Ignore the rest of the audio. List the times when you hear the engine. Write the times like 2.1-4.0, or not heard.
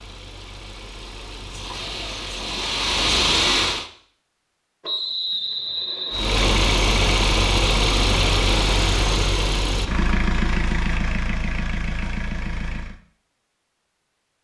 0.0-3.9, 6.1-13.0.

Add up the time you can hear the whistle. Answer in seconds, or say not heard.
2 s.